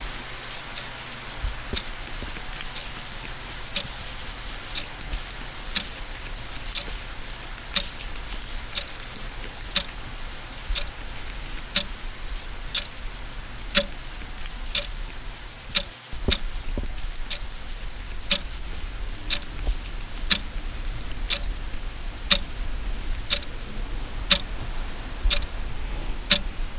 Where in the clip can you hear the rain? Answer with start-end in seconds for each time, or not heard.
0.0-26.7.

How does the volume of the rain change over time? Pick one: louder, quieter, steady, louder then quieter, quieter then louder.
quieter.